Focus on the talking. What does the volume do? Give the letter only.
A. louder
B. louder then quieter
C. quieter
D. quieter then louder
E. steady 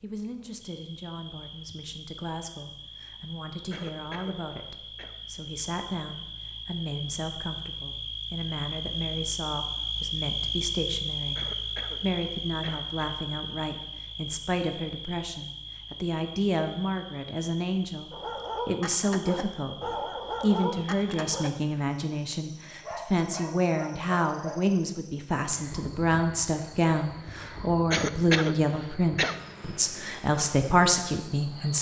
A.